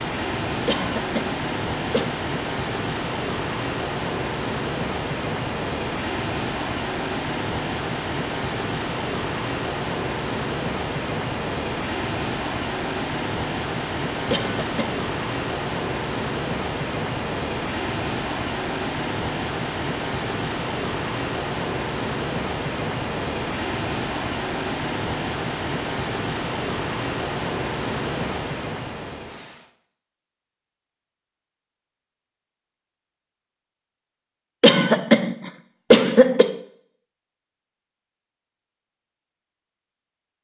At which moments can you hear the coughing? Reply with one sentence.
The coughing can be heard from 0.7 to 2.1 s, from 14.3 to 15.0 s and from 34.6 to 36.5 s.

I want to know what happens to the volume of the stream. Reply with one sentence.
The volume of the stream stays about the same.